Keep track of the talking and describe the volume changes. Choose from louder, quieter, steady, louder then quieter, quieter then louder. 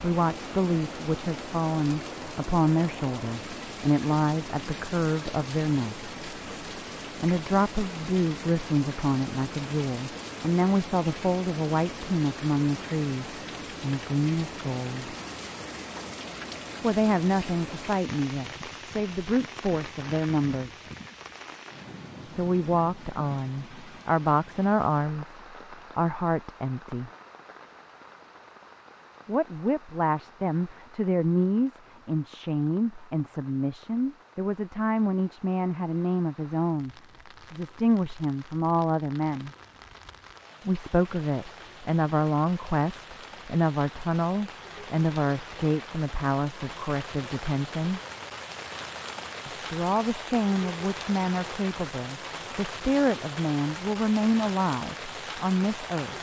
steady.